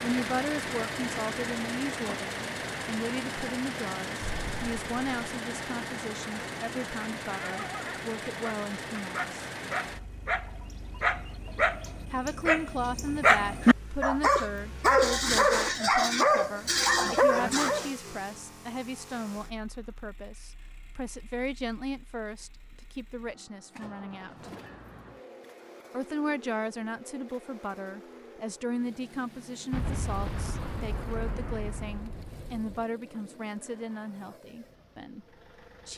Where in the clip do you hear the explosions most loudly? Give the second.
30 s.